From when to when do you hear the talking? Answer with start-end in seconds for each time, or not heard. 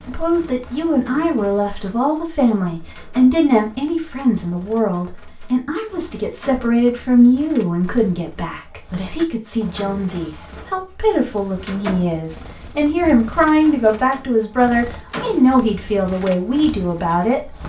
0.1-17.5.